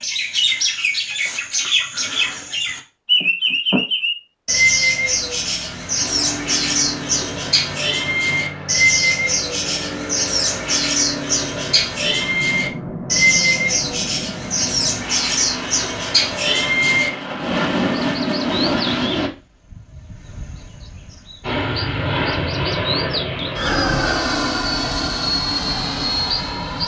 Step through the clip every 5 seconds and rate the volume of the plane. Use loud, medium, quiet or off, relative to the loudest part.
off, medium, medium, loud, loud, loud.